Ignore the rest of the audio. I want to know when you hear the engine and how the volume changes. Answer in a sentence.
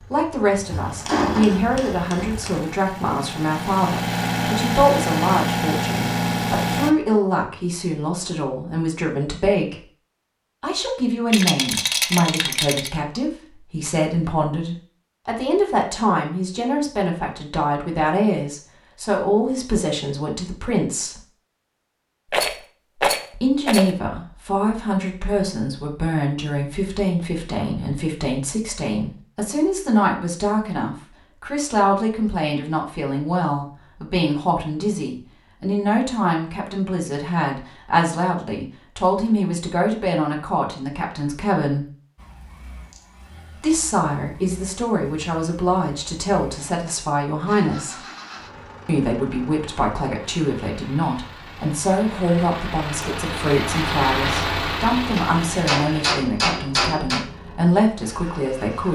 You can hear the engine from 0.0 to 6.9 s, getting louder; and from 42.1 to 58.9 s, getting louder then quieter.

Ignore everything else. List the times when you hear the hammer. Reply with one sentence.
The hammer can be heard from 0.7 to 2.6 s and from 55.1 to 57.2 s.